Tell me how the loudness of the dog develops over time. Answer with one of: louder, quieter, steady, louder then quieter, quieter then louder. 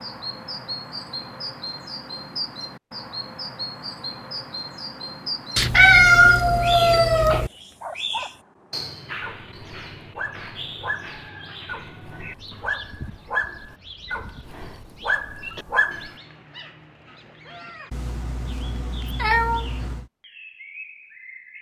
louder.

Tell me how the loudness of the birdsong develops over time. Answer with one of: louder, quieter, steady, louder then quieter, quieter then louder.
quieter.